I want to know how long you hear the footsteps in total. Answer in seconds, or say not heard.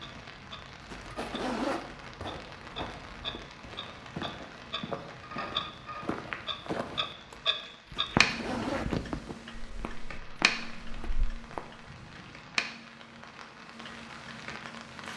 11 s.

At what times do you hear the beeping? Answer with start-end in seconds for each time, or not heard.
not heard.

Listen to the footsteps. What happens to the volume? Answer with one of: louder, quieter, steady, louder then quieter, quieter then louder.
louder then quieter.